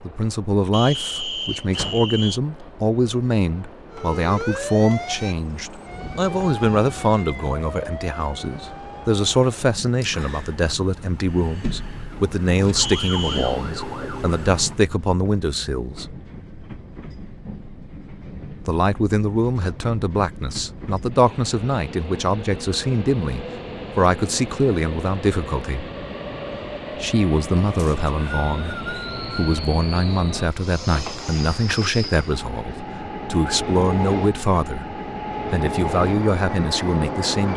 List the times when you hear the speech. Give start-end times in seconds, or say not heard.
0.0-16.1, 18.6-25.9, 27.0-37.5.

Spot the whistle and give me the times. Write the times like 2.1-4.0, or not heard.
0.7-2.4, 12.8-13.6, 27.8-29.6.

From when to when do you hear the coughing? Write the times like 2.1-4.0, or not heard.
not heard.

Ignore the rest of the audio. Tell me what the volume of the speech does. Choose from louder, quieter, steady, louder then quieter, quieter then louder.
steady.